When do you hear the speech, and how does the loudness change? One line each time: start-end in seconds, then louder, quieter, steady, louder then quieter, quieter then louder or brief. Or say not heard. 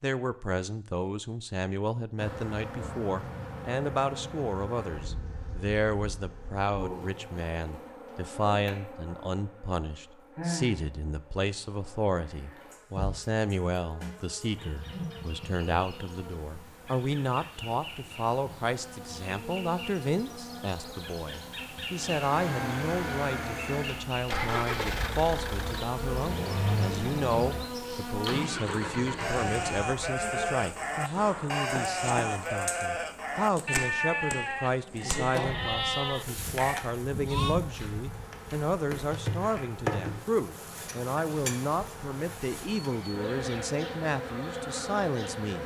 0.0-45.6 steady.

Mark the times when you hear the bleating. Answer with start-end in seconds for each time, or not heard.
29.1-37.6.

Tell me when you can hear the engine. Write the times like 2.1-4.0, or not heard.
21.9-29.9.